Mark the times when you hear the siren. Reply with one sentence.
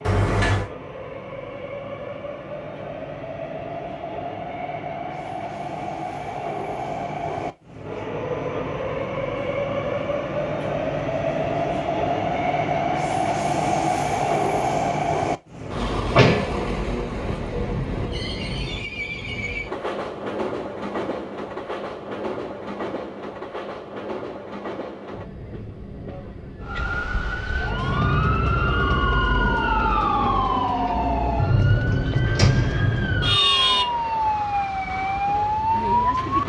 You can hear the siren from 26.6 to 36.4 s.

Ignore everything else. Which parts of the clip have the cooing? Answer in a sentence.
You can't hear the cooing here.